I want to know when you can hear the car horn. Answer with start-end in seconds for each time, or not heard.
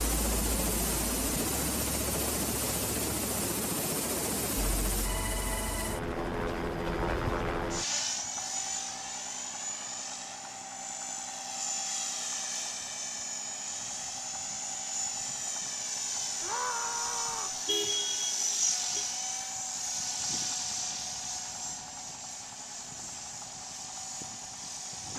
17.6-19.1.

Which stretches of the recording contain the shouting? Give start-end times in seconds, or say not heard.
16.4-17.6.